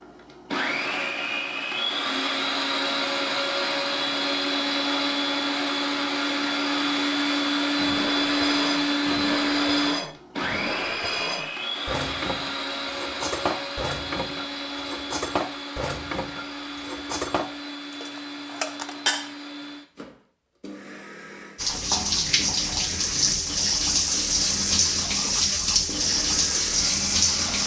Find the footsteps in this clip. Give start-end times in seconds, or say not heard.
not heard.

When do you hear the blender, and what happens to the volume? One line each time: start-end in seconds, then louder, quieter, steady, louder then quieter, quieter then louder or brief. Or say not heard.
0.0-27.6 quieter.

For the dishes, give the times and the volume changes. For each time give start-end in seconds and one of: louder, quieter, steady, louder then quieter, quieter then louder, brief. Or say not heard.
7.8-19.4 steady.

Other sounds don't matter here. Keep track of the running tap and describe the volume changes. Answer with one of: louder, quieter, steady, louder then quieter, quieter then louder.
steady.